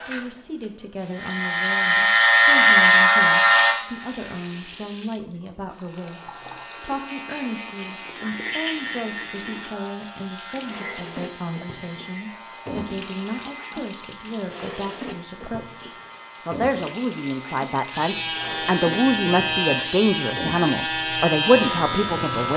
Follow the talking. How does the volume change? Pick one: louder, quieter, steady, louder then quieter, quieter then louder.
louder.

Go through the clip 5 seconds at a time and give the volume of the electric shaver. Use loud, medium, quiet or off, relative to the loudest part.
loud, quiet, quiet, quiet, medium.